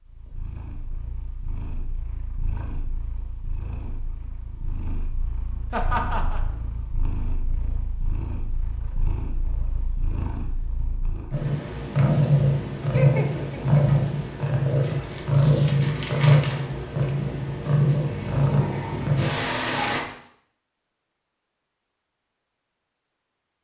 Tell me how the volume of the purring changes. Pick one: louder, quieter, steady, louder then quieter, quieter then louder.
louder.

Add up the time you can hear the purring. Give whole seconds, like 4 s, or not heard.
20 s.